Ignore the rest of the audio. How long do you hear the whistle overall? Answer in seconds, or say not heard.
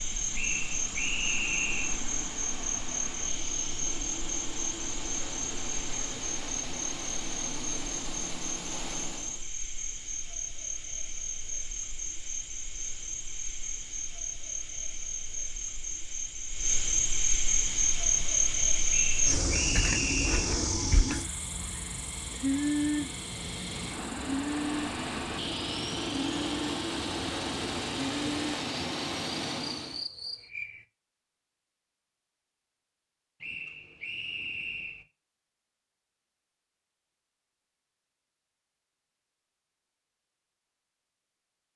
5 s.